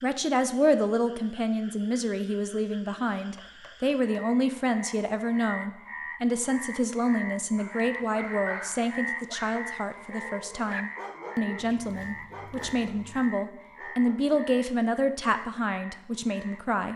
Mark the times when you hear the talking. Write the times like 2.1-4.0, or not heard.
0.0-16.9.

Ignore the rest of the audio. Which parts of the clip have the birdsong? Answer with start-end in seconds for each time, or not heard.
not heard.